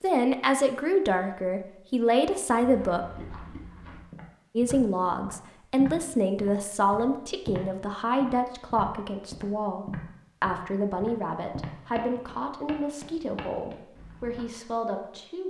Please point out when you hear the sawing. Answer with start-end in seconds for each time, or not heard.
not heard.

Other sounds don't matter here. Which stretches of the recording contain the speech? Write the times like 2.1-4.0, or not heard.
0.0-3.0, 4.5-15.4.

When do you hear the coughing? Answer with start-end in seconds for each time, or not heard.
not heard.